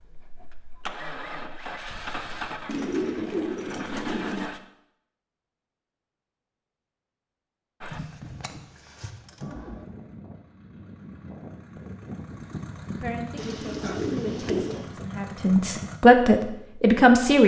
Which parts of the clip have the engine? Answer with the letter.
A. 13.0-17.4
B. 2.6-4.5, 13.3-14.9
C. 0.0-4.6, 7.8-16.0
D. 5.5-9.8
C.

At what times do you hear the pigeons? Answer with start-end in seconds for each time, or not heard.
2.6-4.5, 13.3-14.9.